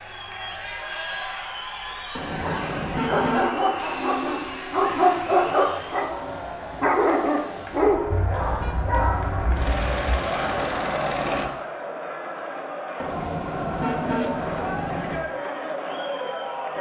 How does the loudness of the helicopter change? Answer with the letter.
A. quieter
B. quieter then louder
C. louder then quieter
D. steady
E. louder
B.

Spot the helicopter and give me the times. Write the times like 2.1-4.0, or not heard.
3.8-11.5.